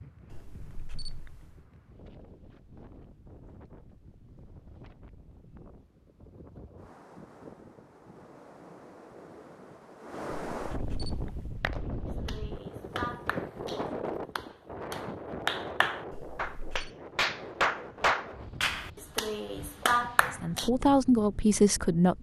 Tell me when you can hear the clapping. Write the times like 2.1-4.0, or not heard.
11.4-20.7.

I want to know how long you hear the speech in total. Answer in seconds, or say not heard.
2 s.